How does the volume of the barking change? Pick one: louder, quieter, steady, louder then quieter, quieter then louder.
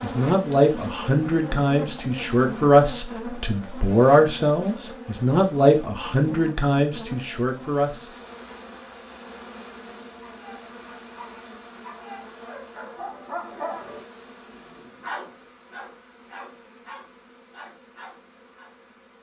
louder then quieter.